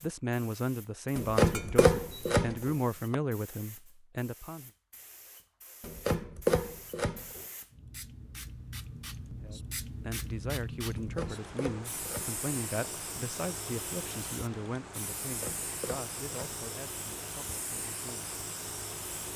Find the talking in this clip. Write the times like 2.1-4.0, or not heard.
0.0-4.7, 9.4-18.3.